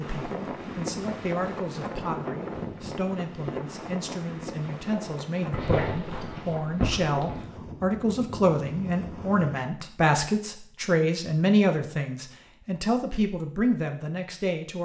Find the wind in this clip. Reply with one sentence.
The wind can be heard from 0.0 to 9.7 s.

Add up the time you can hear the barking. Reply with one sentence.
The barking can be heard for 2 seconds in total.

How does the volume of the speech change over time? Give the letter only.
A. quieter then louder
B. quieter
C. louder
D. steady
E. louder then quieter
C.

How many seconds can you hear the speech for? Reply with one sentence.
The speech can be heard for 15 seconds in total.